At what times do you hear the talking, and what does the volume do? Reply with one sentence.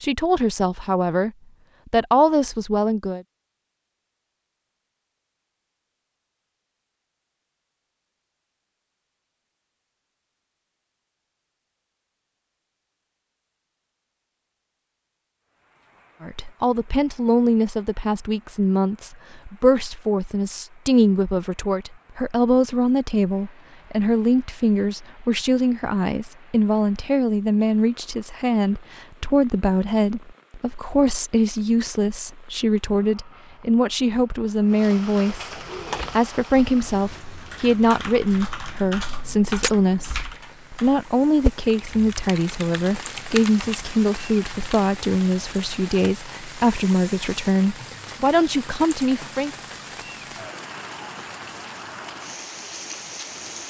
You can hear the talking briefly from 0.0 to 1.3 s; briefly from 1.9 to 3.2 s; from 16.2 to 35.5 s, at a steady volume; and from 36.1 to 49.5 s, at a steady volume.